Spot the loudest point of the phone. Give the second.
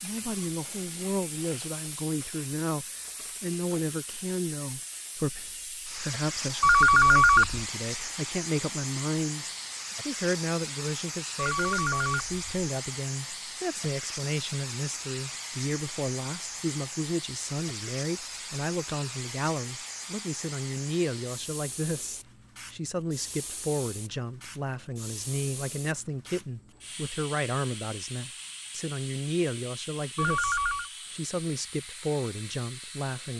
7 s.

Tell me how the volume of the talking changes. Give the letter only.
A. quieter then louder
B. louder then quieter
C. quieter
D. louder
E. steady
E.